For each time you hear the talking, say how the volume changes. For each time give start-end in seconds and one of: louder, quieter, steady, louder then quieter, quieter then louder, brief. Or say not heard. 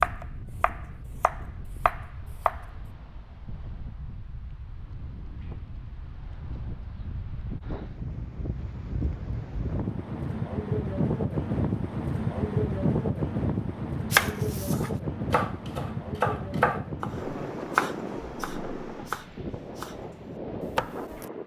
not heard.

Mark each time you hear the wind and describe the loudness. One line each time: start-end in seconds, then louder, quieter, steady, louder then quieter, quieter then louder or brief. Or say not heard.
0.0-21.4 louder then quieter.